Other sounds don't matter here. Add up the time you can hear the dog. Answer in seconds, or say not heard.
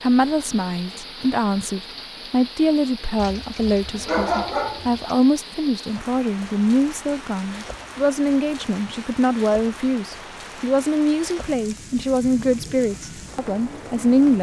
2 s.